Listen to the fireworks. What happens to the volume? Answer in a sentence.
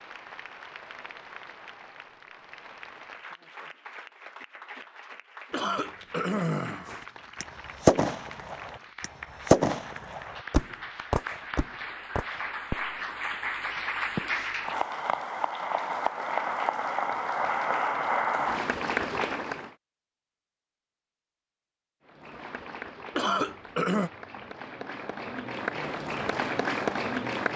The volume of the fireworks goes down.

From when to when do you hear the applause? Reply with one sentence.
You can hear the applause from 0.0 to 19.8 s and from 22.1 to 27.5 s.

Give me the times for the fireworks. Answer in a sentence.
You can hear the fireworks from 6.8 to 14.8 s.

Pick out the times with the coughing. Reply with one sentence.
The coughing can be heard from 5.5 to 7.0 s and from 23.1 to 24.1 s.